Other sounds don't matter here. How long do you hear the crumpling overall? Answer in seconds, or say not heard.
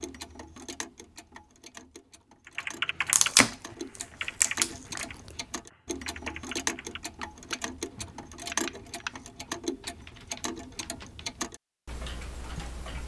2 s.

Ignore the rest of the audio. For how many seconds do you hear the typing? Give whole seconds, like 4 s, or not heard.
9 s.